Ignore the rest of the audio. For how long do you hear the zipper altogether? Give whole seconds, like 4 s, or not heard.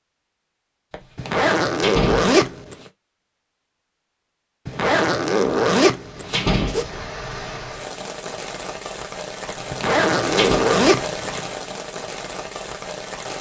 6 s.